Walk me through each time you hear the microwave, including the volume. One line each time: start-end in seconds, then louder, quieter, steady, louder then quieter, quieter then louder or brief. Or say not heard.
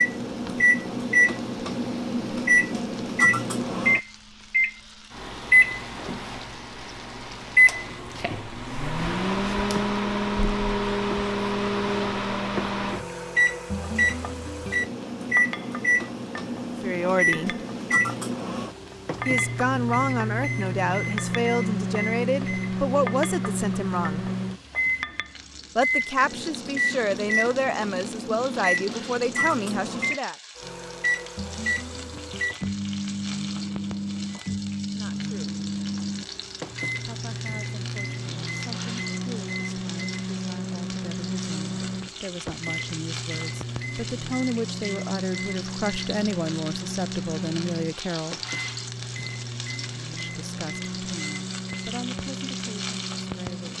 0.0-53.7 quieter.